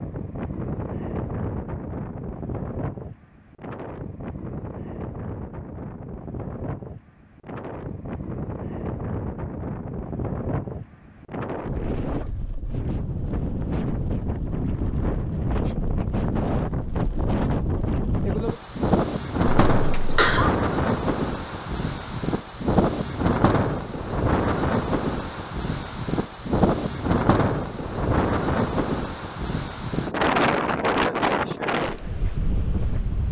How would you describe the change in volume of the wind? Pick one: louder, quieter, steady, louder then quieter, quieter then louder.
louder.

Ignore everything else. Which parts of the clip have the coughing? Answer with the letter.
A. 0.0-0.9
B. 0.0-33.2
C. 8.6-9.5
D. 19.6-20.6
D.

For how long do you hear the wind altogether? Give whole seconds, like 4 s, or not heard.
33 s.